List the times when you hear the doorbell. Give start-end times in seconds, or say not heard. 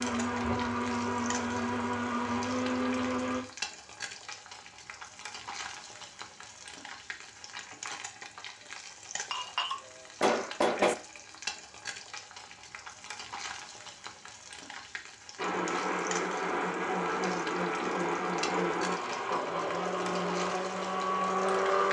not heard.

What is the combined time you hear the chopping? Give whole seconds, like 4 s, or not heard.
not heard.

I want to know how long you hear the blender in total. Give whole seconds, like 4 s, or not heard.
10 s.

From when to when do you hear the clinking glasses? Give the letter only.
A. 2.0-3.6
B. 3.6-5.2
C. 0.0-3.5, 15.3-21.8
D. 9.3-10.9
D.